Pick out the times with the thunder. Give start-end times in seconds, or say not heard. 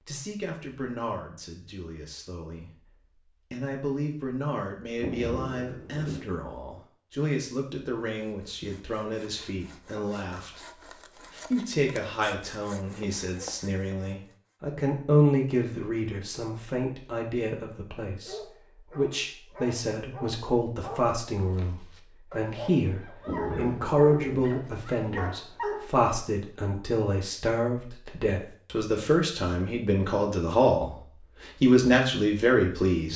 5.0-6.3, 23.2-24.5.